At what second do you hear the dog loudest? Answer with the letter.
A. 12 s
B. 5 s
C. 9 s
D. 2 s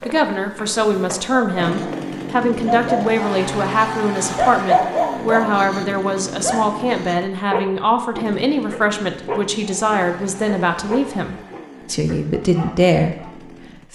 B.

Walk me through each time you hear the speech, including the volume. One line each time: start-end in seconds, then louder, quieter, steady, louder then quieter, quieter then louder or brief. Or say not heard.
0.1-13.9 steady.